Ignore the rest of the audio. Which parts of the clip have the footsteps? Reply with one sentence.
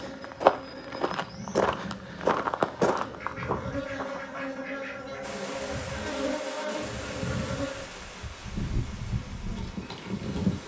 You can hear the footsteps from 0.0 to 4.5 s.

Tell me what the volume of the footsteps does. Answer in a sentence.
The volume of the footsteps goes down.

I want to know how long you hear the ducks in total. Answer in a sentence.
The ducks can be heard for 2 seconds in total.